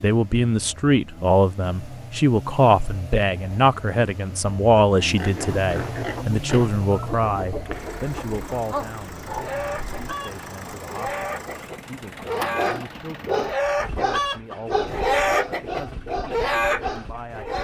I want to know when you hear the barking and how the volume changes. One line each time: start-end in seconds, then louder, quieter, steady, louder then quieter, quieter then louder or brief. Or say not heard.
8.5-10.2 brief
12.4-17.5 quieter.